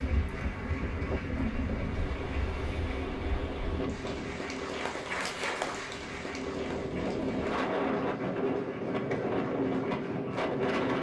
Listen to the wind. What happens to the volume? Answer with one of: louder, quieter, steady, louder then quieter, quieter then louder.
quieter then louder.